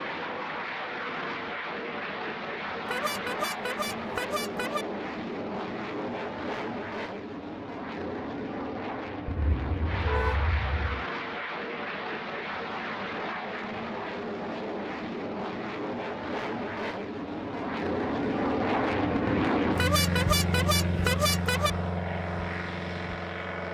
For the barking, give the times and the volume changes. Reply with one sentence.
The barking can't be heard in this clip.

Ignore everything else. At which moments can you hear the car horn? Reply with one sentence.
The car horn can be heard from 2.9 to 4.8 s, from 9.2 to 11.1 s and from 19.8 to 21.7 s.